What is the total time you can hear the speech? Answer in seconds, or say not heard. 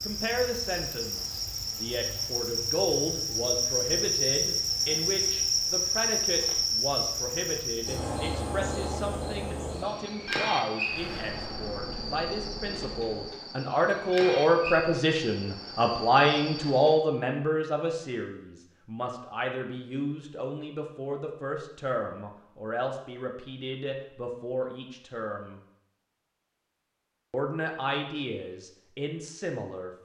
28 s.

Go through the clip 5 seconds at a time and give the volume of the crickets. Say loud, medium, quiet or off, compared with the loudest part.
loud, loud, medium, medium, off, off.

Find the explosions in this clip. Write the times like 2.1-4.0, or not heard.
10.8-13.4.